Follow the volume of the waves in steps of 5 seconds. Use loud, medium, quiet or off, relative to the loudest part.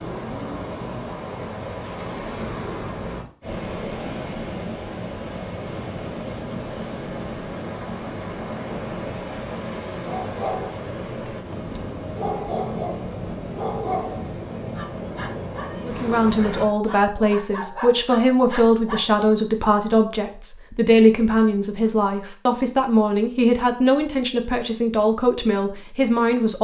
loud, loud, loud, loud, off, off.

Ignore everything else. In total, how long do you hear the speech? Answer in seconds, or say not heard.
11 s.